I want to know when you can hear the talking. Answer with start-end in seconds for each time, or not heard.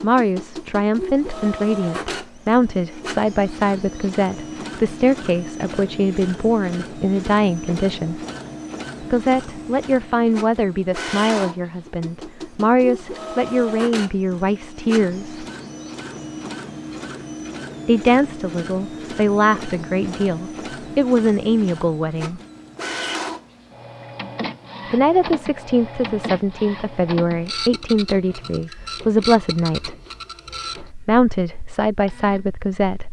0.0-8.2, 9.0-15.4, 17.9-22.4, 24.9-29.9, 30.8-33.0.